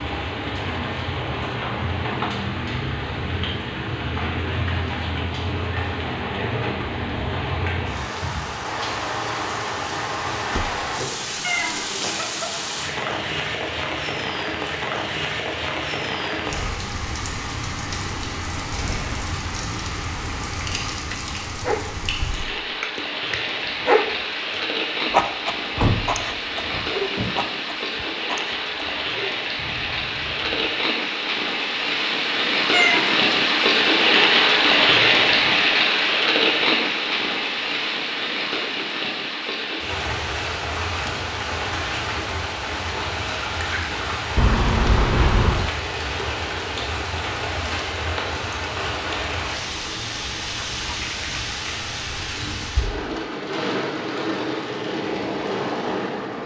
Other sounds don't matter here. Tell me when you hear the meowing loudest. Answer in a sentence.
The volume of the meowing peaks at 33 seconds.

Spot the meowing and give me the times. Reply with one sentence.
You can hear the meowing from 11.4 to 12.6 s and from 32.7 to 33.2 s.